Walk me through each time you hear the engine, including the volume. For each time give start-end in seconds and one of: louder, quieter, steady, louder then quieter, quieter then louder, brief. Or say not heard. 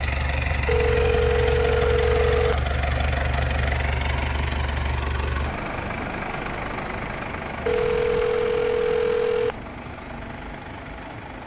0.0-11.4 quieter.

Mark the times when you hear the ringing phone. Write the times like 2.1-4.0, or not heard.
0.7-2.6, 7.7-9.6.